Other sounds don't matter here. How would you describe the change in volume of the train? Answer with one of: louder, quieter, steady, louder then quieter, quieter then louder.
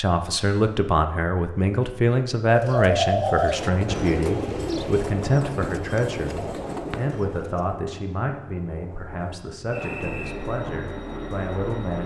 quieter then louder.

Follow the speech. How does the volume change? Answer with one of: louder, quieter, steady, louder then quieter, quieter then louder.
quieter.